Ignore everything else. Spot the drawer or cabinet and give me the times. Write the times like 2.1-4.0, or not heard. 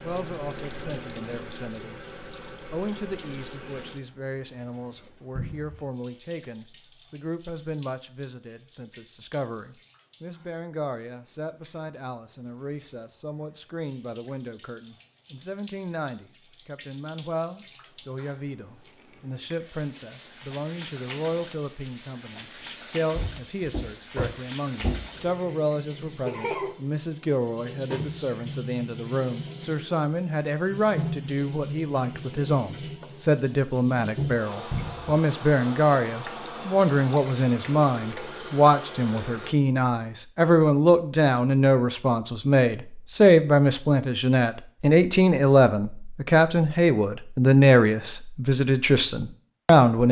5.3-5.8, 23.1-25.1, 34.7-35.1.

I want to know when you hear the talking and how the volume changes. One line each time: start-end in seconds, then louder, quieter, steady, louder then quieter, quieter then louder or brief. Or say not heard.
0.0-2.0 brief
2.7-50.0 louder.